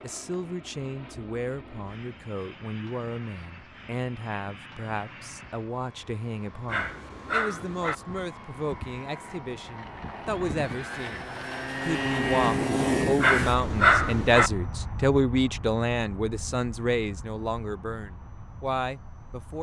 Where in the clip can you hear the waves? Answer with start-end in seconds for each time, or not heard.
not heard.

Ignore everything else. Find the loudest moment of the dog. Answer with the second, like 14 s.
14 s.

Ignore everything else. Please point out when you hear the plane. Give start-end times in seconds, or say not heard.
0.0-19.5.